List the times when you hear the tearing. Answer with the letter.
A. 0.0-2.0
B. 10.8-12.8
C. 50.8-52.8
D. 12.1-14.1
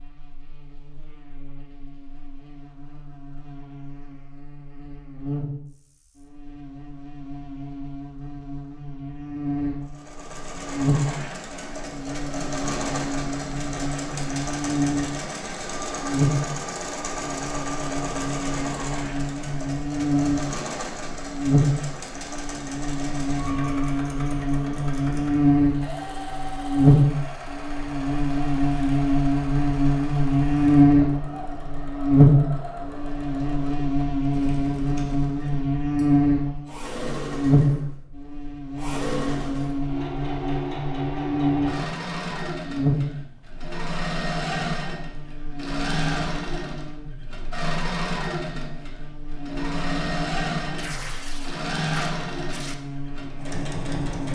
C.